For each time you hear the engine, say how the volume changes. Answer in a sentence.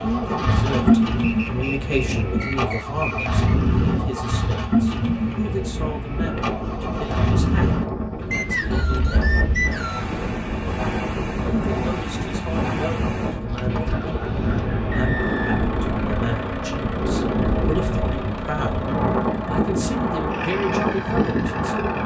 The engine can be heard from 0.0 to 22.0 s, getting quieter.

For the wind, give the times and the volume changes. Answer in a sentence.
The wind can be heard from 0.0 to 22.0 s, getting louder.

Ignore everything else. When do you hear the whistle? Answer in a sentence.
You can hear the whistle from 1.2 to 3.5 s, from 8.3 to 10.1 s and from 14.9 to 15.8 s.